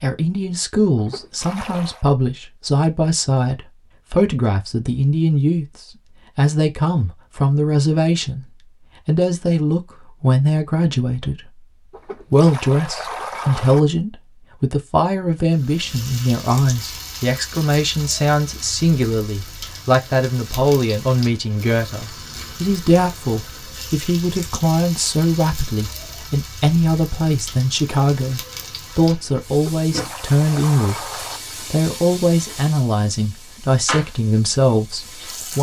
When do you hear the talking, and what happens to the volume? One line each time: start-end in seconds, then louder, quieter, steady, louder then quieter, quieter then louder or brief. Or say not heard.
0.0-11.7 steady
12.3-35.5 steady.